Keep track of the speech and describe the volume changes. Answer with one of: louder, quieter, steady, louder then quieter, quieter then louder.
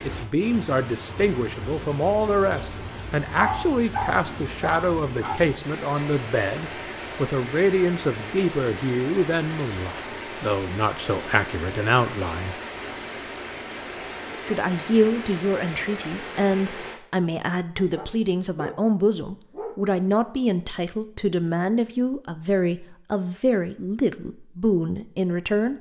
steady.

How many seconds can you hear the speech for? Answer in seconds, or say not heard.
24 s.